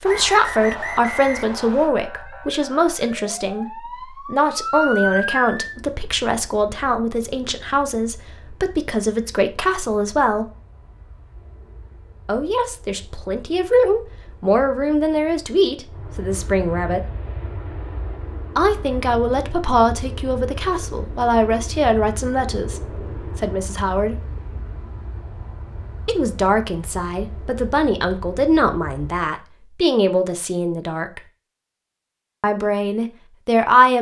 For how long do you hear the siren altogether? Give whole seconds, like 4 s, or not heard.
6 s.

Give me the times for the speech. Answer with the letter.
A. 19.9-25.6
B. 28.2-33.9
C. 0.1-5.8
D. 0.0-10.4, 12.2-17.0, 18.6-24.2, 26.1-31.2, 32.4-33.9
D.